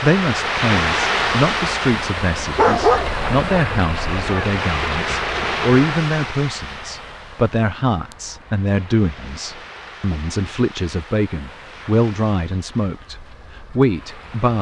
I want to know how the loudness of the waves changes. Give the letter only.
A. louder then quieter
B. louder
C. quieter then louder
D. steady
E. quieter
E.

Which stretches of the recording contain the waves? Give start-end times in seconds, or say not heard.
0.0-14.5.